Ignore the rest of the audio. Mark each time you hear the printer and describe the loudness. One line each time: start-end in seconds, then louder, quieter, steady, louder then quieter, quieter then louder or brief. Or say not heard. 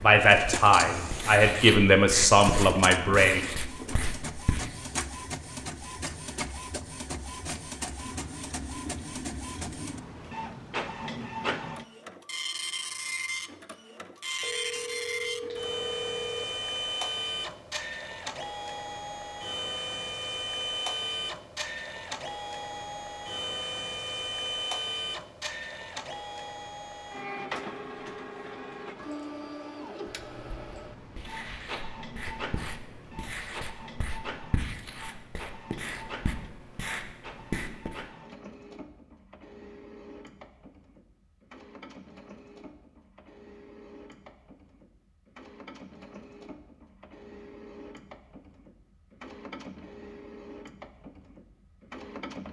0.1-52.4 quieter.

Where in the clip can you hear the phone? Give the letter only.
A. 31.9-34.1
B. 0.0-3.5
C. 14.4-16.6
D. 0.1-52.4
C.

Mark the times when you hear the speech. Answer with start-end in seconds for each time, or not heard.
0.0-3.5.